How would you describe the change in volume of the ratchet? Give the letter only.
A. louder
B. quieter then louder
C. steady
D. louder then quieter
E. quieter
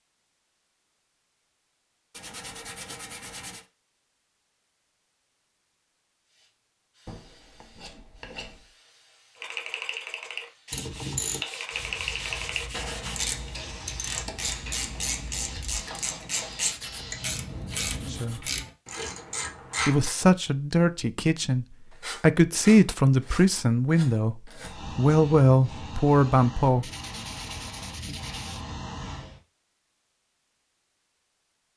C.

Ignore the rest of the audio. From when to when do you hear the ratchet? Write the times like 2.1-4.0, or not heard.
9.4-20.1.